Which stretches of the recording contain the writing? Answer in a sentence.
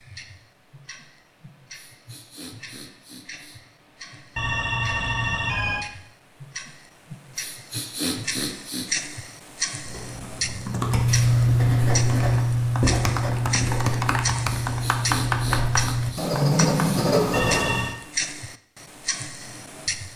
You can hear the writing from 10.7 to 17.9 s.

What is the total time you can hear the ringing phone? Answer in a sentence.
The ringing phone can be heard for 2 seconds in total.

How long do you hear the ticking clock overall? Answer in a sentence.
The ticking clock can be heard for 20 seconds in total.